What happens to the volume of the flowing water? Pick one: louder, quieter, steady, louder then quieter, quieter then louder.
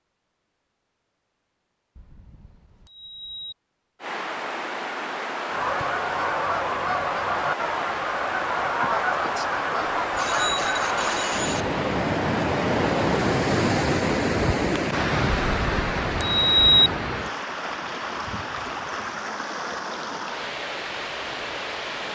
louder then quieter.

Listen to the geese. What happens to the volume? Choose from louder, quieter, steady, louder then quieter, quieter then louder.
steady.